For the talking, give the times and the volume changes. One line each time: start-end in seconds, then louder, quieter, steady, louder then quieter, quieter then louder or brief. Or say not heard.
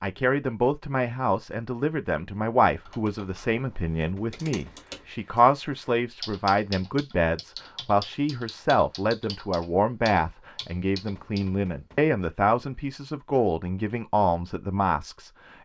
0.0-15.3 steady.